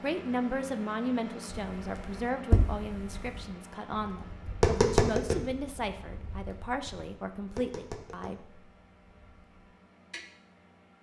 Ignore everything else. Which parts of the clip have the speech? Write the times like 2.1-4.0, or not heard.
0.0-8.6.